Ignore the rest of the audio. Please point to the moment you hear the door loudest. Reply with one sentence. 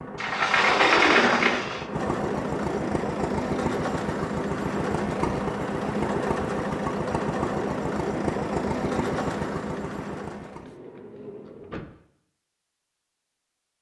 The volume of the door peaks at 1 second.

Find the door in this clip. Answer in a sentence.
You can hear the door from 0.1 to 1.9 s and from 10.4 to 12.0 s.